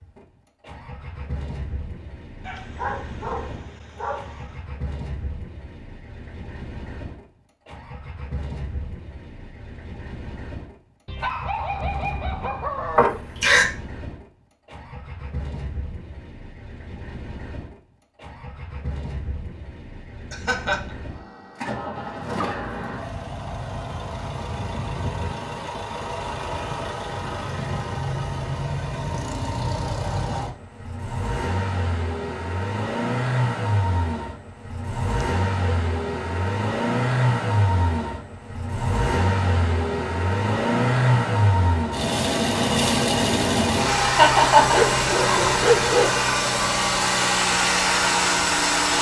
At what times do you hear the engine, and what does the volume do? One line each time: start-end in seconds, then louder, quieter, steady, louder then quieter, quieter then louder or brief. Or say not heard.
0.0-48.9 louder.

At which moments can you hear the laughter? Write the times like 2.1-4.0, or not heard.
12.9-13.7, 20.3-20.8, 44.1-44.8.